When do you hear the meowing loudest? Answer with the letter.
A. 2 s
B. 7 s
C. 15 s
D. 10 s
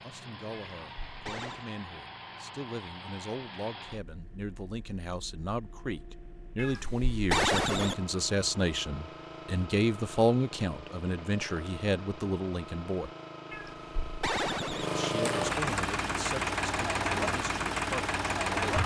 B.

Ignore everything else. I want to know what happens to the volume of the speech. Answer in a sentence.
The volume of the speech goes up, then down.